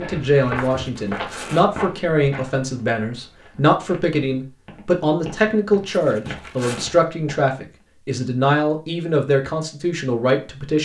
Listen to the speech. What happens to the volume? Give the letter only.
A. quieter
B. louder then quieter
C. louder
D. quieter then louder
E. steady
E.